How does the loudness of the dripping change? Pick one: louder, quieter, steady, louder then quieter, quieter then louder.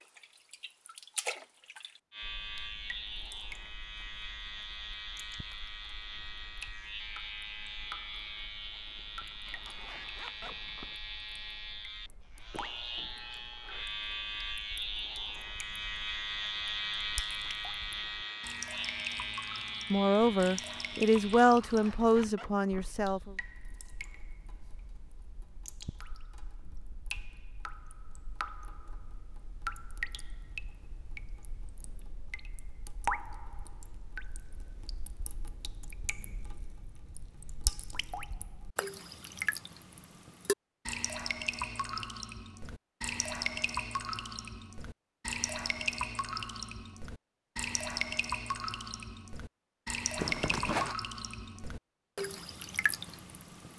louder.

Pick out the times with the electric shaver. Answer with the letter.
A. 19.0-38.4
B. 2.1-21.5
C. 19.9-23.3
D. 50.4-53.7
B.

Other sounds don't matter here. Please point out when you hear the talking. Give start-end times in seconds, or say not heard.
19.9-23.3.